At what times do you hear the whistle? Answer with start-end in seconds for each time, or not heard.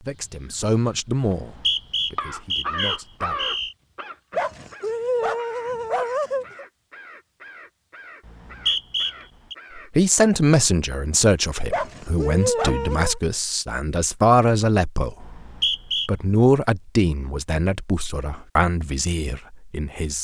1.2-3.8, 8.2-9.6, 15.2-16.1.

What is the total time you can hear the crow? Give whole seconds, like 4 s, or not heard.
10 s.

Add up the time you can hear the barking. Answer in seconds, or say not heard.
4 s.